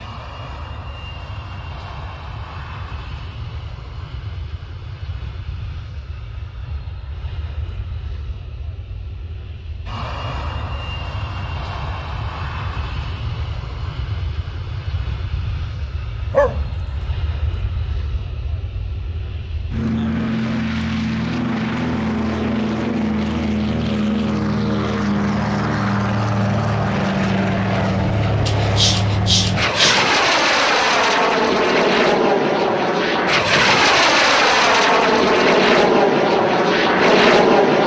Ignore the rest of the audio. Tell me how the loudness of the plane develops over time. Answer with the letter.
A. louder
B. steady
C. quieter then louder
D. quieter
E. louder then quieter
A.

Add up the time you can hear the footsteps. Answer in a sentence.
The footsteps can't be heard in this clip.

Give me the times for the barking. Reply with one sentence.
You can hear the barking from 16.3 to 17.1 s and from 28.4 to 30.1 s.